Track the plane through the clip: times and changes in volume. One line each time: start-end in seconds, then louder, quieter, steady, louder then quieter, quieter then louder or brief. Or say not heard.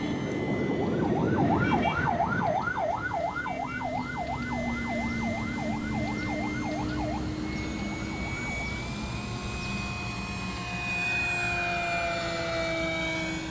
0.0-13.4 louder.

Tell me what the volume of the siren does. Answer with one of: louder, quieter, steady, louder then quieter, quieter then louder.
quieter.